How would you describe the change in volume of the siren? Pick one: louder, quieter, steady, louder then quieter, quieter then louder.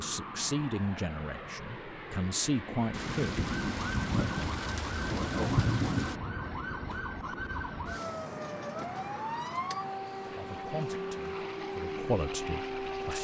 steady.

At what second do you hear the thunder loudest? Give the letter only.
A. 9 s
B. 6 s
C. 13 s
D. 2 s
B.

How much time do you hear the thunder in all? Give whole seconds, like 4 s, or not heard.
3 s.